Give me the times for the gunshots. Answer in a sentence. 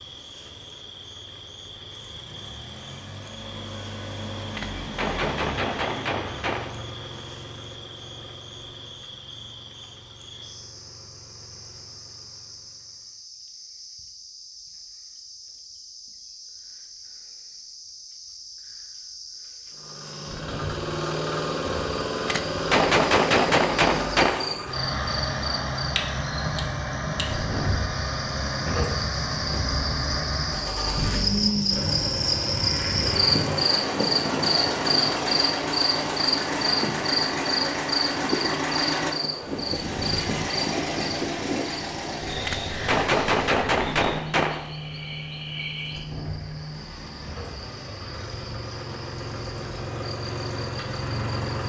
The gunshots can be heard from 4.3 to 6.8 s, from 21.9 to 24.6 s and from 42.2 to 44.8 s.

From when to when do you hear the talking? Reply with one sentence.
You can't hear the talking here.